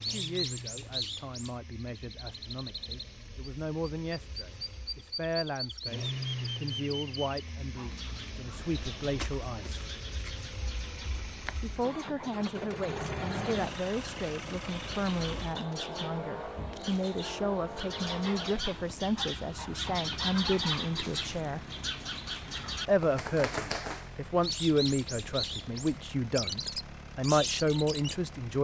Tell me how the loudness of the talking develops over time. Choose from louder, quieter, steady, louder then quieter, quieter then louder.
louder.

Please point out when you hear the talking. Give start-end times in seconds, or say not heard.
0.0-9.8, 11.6-21.6, 22.9-28.5.